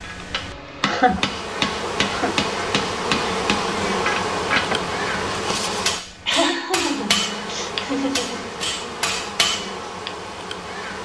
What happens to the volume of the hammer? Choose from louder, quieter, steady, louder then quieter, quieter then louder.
steady.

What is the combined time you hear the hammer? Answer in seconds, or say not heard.
10 s.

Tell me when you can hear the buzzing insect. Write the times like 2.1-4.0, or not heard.
0.0-11.0.